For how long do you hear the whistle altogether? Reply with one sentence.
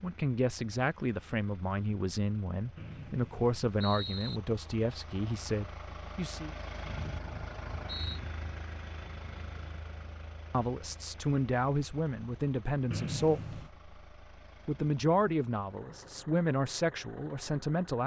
You can hear the whistle for 4 seconds altogether.